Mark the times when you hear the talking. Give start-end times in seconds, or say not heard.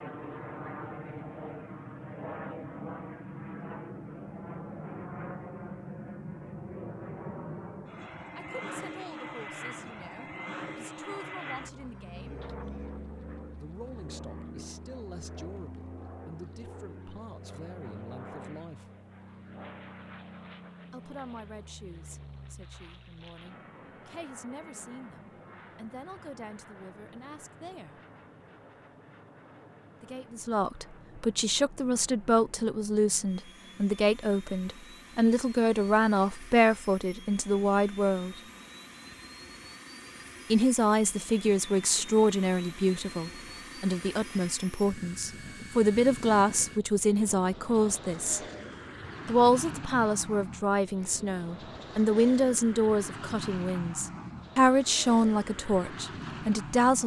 8.3-12.4, 13.6-18.9, 20.9-28.0, 30.0-38.4, 40.5-48.4, 49.2-57.0.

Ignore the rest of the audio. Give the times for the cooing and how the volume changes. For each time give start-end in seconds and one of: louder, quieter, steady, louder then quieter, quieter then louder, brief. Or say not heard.
not heard.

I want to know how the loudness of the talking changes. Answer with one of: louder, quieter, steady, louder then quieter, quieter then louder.
louder.